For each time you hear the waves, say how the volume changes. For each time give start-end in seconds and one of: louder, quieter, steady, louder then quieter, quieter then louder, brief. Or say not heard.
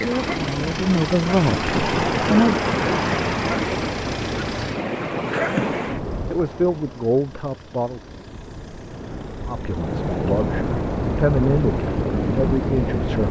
0.0-13.2 quieter then louder.